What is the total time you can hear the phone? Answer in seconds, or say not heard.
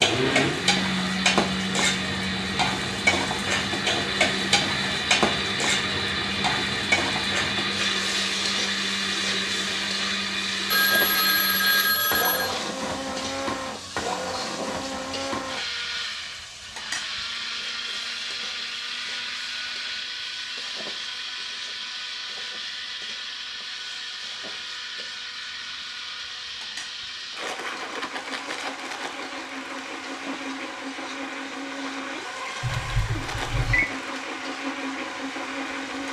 3 s.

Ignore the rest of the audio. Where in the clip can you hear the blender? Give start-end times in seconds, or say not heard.
0.0-36.0.